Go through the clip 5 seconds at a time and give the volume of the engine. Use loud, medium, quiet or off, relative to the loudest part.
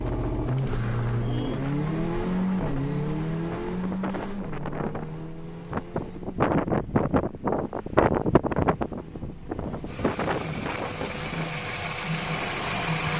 loud, quiet, loud.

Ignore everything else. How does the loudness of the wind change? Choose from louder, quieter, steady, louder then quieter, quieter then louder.
louder then quieter.